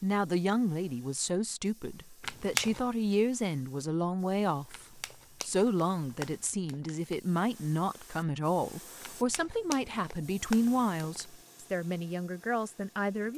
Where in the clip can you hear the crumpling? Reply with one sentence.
The crumpling can be heard from 2.2 to 2.9 s, from 4.7 to 7.2 s and from 9.0 to 11.3 s.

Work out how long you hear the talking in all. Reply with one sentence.
The talking can be heard for 13 seconds in total.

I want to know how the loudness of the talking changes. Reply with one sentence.
The volume of the talking stays about the same.